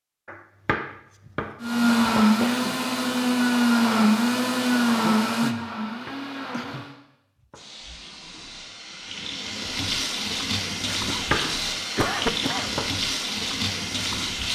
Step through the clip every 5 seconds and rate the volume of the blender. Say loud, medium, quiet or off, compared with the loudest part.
loud, medium, off.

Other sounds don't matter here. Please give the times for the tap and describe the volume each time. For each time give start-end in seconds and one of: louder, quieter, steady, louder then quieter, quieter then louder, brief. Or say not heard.
7.5-14.5 louder.